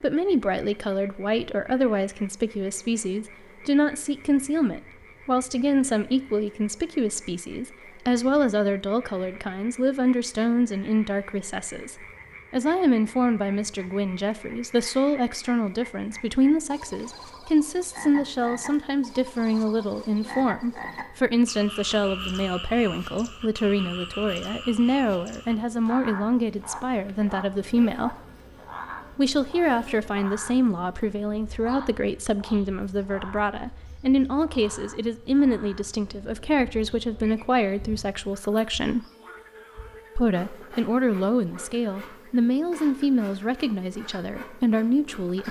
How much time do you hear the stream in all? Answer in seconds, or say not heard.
not heard.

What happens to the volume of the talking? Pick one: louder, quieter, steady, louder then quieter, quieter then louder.
steady.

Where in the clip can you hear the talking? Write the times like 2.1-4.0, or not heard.
0.0-28.1, 29.1-39.0, 40.1-45.4.